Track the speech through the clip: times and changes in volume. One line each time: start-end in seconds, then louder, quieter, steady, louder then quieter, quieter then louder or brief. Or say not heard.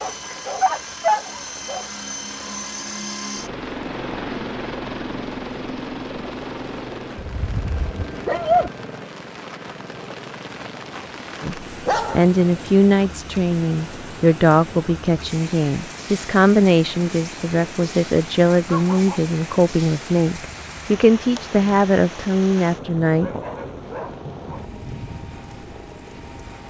11.4-23.4 steady.